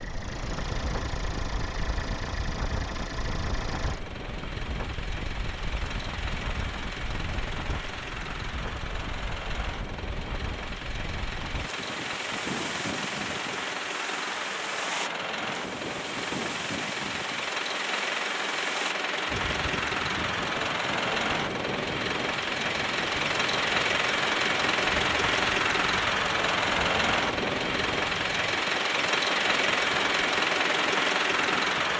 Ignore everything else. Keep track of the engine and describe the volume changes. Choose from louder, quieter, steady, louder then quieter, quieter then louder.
louder.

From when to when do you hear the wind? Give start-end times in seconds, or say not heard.
0.0-31.9.